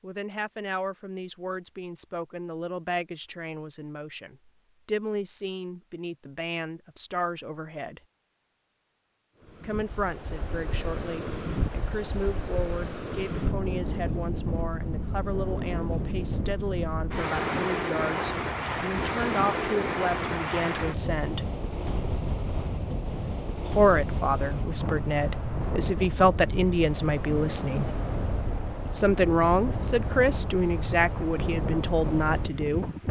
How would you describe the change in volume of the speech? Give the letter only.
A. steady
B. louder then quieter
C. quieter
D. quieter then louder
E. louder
E.